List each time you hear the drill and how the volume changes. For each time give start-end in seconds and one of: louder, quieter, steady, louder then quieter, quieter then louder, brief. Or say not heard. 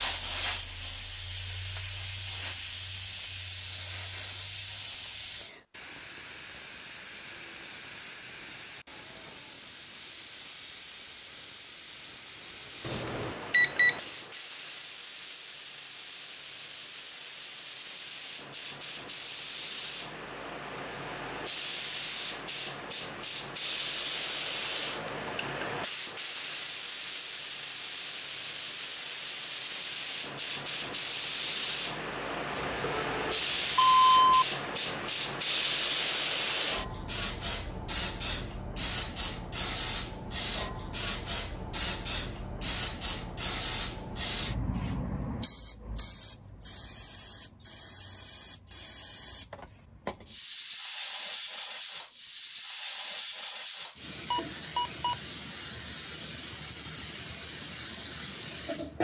not heard.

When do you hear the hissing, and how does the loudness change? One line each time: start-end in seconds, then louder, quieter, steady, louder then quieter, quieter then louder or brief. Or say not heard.
0.0-58.9 louder.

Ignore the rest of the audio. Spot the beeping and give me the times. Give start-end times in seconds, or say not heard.
12.8-14.0, 32.5-34.5, 54.3-55.1.